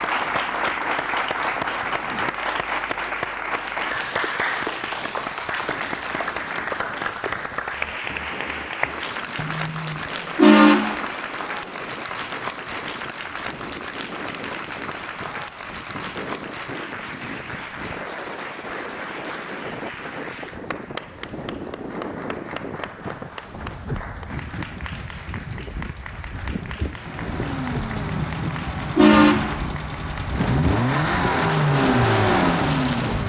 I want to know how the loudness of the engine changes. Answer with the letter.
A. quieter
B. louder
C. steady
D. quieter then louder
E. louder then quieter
B.